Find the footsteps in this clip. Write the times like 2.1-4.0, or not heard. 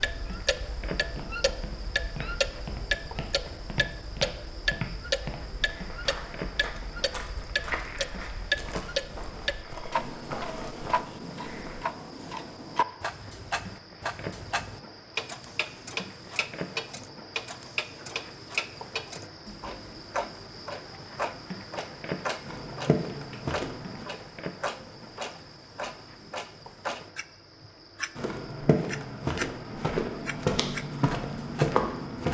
1.1-11.8, 22.4-24.1, 28.1-32.2.